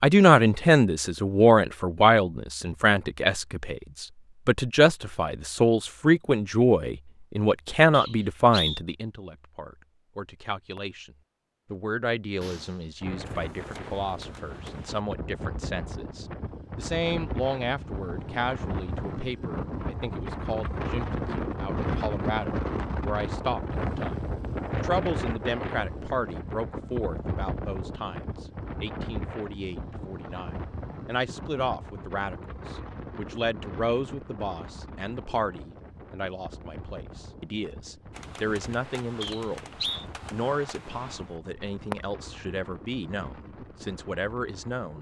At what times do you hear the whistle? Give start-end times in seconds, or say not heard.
7.9-8.8, 39.2-40.0.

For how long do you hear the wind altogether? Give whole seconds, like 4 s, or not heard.
32 s.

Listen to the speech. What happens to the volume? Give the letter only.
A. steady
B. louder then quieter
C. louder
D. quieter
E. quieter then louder
D.